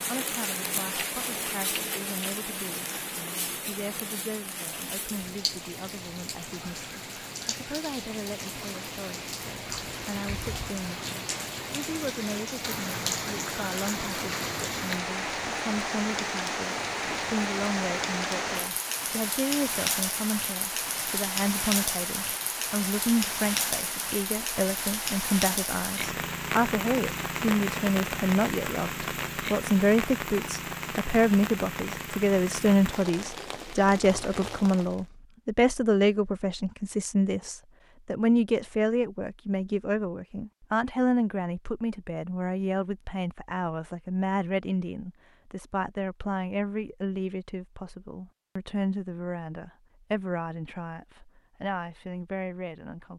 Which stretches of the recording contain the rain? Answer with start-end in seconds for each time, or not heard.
0.0-35.0.